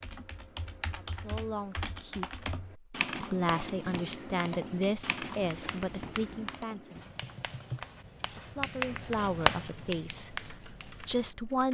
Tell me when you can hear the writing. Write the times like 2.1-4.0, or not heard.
3.1-11.3.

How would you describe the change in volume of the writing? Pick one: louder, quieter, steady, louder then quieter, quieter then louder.
louder.